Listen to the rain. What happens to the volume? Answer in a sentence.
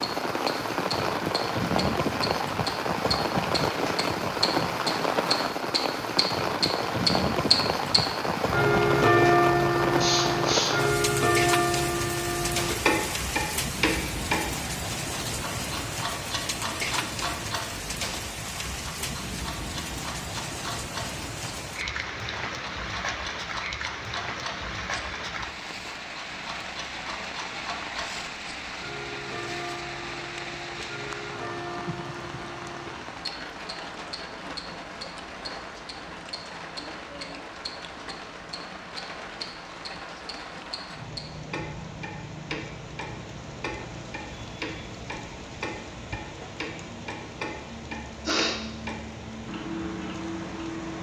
The loudness of the rain goes down.